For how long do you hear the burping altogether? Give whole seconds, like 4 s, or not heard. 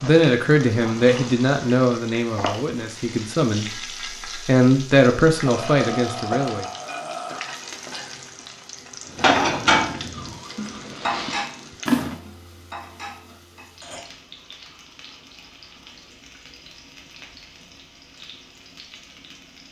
2 s.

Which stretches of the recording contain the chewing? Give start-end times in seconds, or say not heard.
10.1-12.2.